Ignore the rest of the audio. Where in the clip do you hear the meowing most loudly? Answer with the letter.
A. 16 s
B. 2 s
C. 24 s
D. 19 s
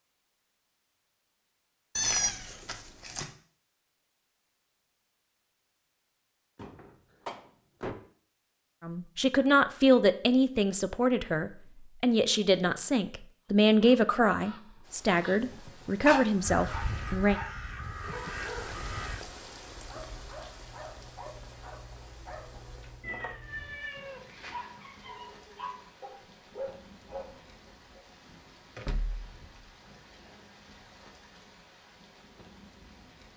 B.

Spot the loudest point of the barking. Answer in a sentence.
The volume of the barking peaks at 16 seconds.